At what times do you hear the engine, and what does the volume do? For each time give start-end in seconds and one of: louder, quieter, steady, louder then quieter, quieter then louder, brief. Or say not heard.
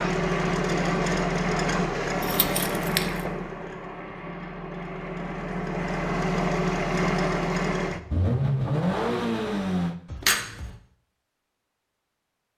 0.0-9.9 quieter then louder.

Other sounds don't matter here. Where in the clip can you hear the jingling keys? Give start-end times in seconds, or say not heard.
2.2-3.2, 10.1-10.8.